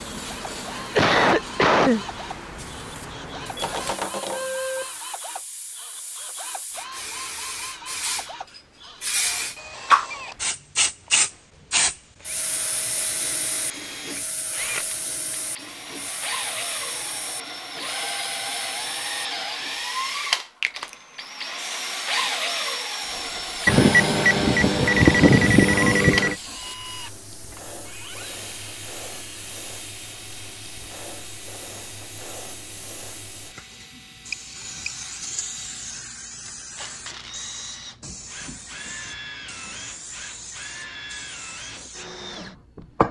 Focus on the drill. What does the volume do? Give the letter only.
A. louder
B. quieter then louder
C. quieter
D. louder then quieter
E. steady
D.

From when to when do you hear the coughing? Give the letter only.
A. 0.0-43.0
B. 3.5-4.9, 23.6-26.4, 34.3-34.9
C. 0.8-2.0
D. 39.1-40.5
C.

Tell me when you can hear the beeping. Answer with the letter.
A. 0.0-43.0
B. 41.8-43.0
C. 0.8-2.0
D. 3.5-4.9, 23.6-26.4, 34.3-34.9
D.